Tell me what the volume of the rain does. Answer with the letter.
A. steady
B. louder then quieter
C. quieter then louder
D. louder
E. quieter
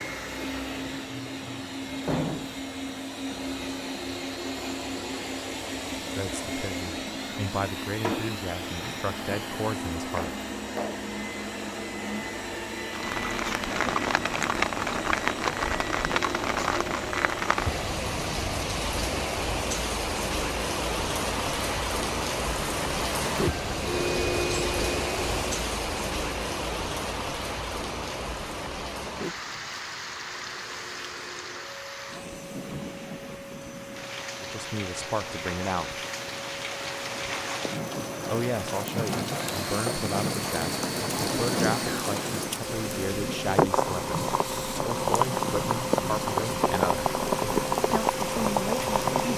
C.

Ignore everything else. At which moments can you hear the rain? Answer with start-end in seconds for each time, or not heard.
12.9-49.3.